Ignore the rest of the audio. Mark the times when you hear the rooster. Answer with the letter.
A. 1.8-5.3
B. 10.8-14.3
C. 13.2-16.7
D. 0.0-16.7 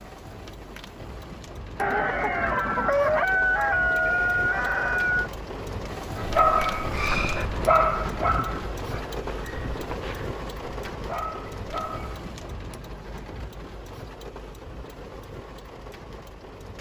A.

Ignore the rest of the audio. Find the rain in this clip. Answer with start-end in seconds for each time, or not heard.
0.0-16.7.